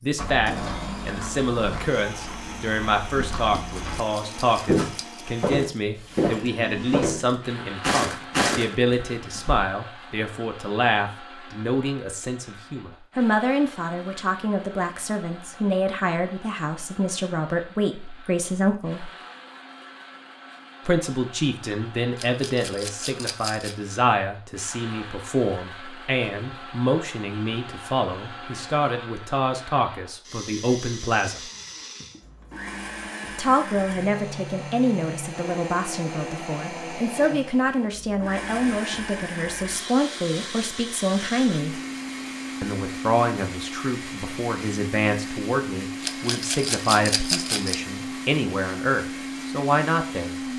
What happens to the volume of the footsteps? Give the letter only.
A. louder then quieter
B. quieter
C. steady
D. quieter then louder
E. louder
E.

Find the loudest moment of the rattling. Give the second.
47 s.